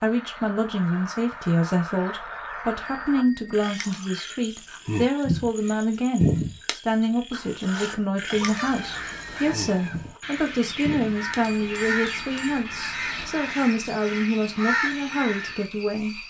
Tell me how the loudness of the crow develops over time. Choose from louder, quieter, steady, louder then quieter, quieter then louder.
louder.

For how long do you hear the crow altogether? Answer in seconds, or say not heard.
8 s.